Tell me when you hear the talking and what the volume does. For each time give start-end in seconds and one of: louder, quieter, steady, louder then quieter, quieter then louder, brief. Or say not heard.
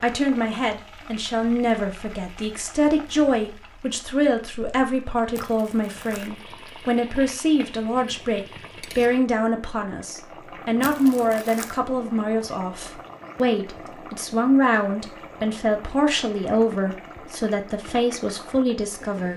0.0-19.3 steady.